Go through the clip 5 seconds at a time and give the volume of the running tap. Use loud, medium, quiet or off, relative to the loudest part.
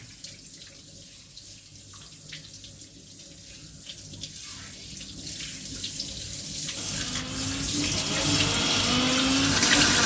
quiet, loud.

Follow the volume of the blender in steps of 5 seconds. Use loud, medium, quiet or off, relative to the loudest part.
off, loud.